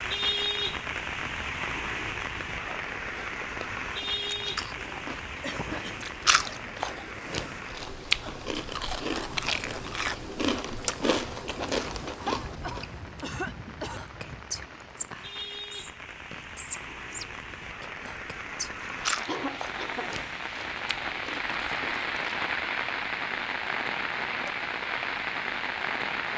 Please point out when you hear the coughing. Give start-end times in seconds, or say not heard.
5.4-6.7, 12.2-14.0, 19.2-20.1.